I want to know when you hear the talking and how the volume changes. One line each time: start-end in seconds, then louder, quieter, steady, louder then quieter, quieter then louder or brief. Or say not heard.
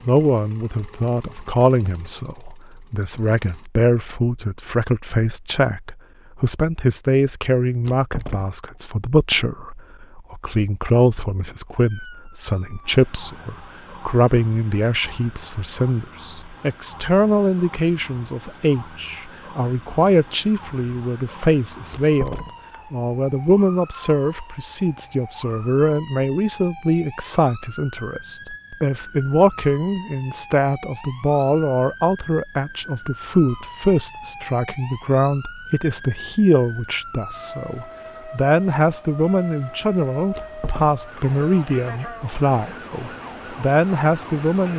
0.1-44.7 steady.